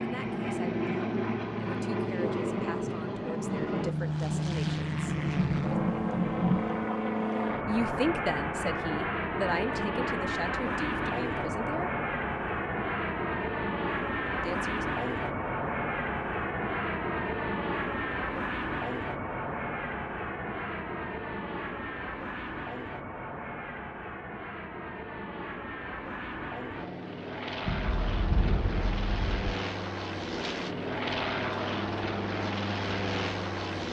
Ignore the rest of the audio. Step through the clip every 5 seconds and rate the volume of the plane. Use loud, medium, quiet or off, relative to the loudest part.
loud, loud, loud, loud, medium, medium, loud.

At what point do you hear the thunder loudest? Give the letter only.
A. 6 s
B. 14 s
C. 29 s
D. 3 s
A.